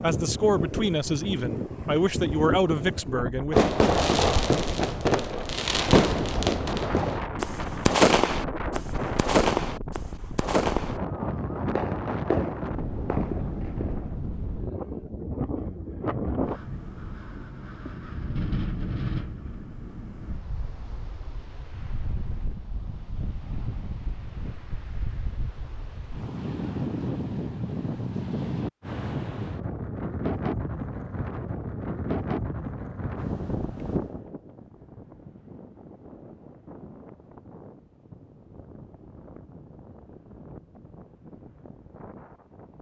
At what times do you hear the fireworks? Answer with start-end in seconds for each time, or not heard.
3.5-14.2.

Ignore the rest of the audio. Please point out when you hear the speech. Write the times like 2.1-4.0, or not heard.
0.0-3.6.